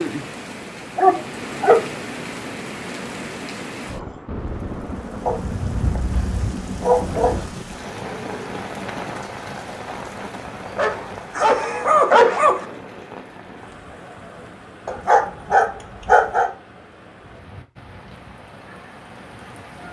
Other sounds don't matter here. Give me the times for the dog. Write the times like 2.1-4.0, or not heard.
0.9-1.9, 5.2-7.5, 10.8-12.7, 14.8-16.5.